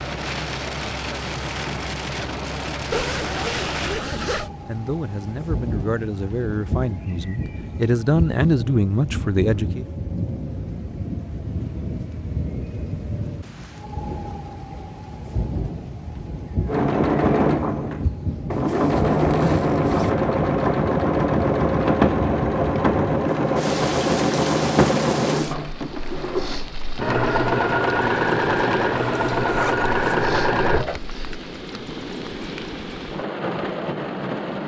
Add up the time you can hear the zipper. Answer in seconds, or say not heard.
4 s.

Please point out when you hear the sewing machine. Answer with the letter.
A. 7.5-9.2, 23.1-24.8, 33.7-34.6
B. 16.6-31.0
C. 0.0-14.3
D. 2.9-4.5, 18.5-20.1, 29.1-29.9
B.